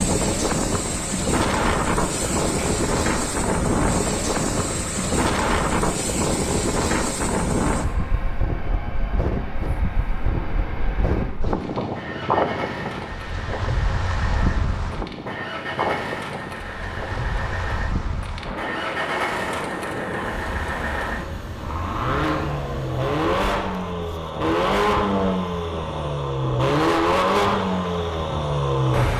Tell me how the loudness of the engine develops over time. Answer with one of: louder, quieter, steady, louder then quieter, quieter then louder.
louder.